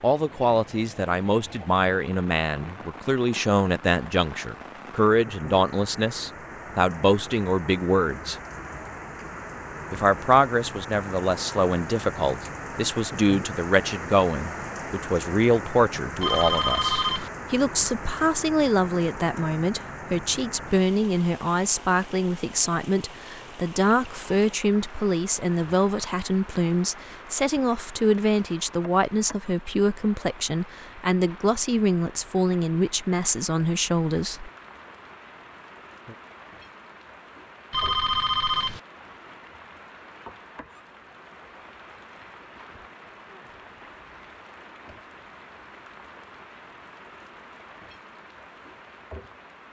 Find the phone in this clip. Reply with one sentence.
The phone can be heard from 16.2 to 17.3 s and from 37.7 to 38.8 s.